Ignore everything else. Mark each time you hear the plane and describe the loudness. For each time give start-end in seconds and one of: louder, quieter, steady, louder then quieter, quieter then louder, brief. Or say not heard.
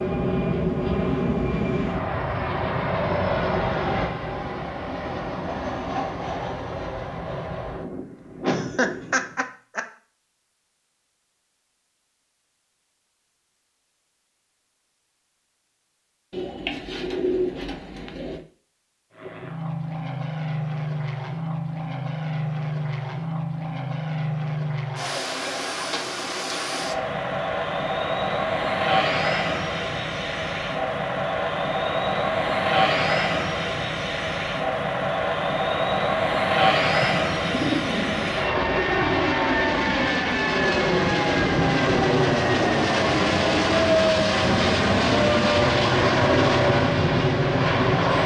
0.0-9.4 quieter
19.1-48.2 louder.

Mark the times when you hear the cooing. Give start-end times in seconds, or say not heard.
16.3-18.4, 37.0-38.5.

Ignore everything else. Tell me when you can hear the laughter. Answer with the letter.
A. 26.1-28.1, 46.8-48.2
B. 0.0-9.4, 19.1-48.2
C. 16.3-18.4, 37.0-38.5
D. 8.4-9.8
D.